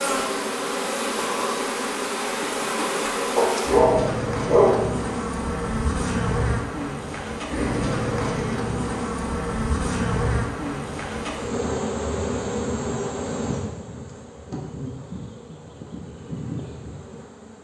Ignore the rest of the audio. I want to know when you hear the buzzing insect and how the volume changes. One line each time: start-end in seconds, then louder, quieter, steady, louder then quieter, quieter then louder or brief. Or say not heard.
0.0-17.6 quieter.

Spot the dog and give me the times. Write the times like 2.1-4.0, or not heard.
3.4-4.8.